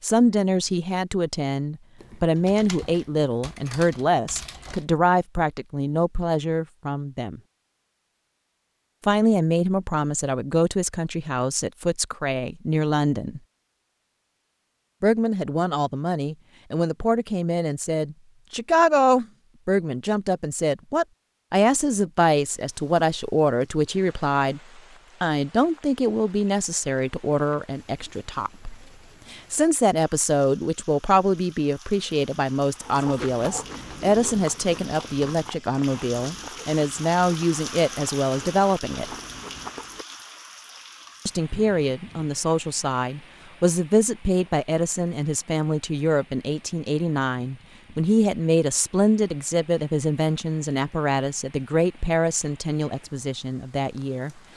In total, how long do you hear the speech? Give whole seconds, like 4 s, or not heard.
49 s.